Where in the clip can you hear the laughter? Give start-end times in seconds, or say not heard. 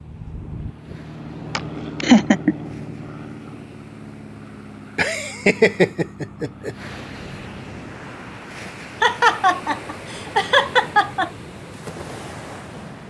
1.6-2.5, 5.0-6.8, 9.0-11.3.